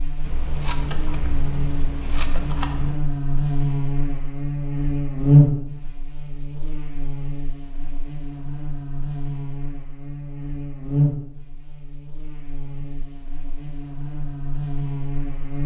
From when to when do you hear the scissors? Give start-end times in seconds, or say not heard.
0.2-3.0.